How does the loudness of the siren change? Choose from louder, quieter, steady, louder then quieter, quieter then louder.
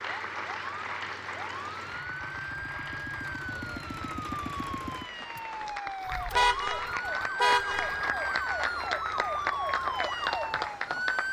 louder.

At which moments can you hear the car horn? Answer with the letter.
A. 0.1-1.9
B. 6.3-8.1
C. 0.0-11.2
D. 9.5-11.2
B.